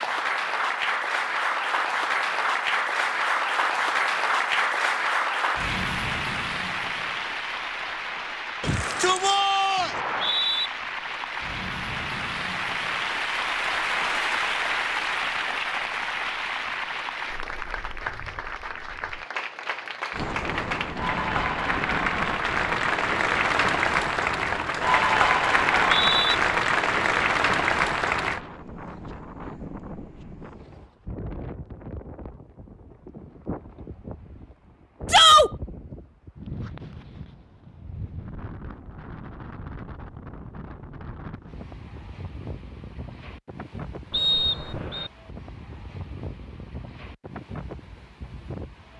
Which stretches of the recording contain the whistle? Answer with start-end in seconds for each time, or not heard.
9.9-10.7, 25.6-26.4, 44.1-45.1.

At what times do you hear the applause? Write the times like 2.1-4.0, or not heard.
0.0-28.4.